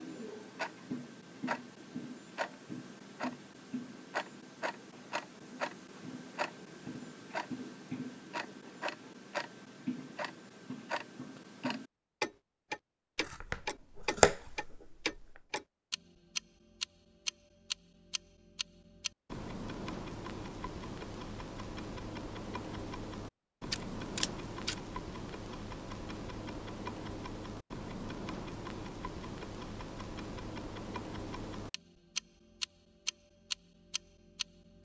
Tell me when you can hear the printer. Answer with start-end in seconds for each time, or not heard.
not heard.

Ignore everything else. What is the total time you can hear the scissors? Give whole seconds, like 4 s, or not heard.
3 s.